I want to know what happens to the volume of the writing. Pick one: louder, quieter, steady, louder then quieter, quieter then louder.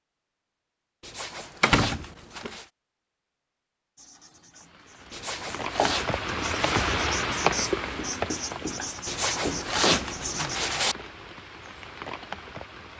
louder.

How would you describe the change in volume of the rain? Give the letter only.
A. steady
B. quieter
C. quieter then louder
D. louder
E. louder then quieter
E.